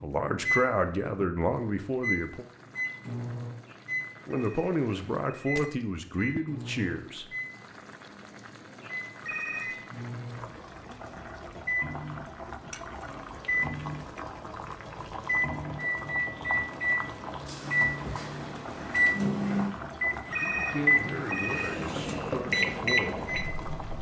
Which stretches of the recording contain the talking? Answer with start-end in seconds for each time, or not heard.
0.0-2.5, 4.2-7.2, 20.2-23.2.